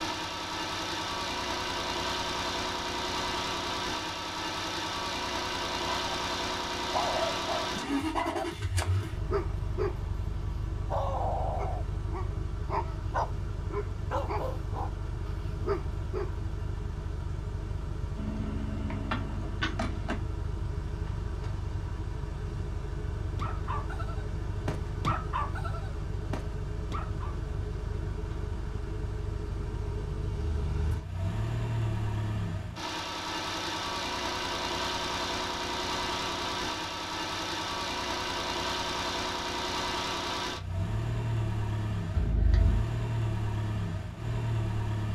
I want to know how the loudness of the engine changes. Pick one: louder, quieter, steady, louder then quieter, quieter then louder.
quieter then louder.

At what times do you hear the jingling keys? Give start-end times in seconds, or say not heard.
18.1-20.1, 42.1-42.9.